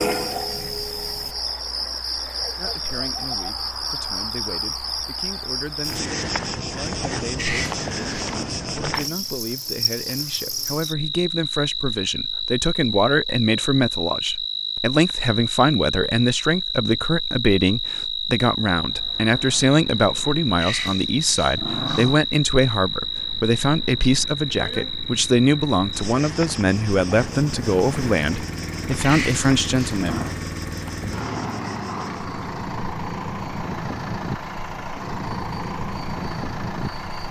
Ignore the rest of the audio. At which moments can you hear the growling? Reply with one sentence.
The growling can be heard from 7.3 to 8.4 s, from 20.6 to 22.1 s and from 29.0 to 30.4 s.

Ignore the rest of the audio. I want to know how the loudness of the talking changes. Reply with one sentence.
The volume of the talking goes up.